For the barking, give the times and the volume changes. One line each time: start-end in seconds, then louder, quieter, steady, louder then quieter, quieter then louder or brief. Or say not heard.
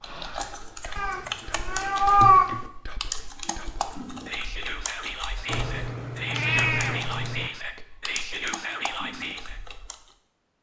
not heard.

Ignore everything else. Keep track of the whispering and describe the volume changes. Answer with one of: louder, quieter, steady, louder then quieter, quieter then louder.
louder.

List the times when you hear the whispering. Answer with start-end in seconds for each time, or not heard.
0.0-9.6.